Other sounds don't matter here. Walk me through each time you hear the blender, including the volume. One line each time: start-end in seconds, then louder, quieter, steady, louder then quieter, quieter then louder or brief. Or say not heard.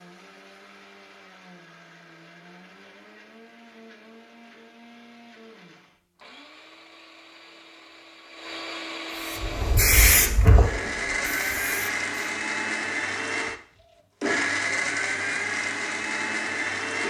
0.0-17.0 louder.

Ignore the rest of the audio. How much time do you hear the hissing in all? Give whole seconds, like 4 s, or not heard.
3 s.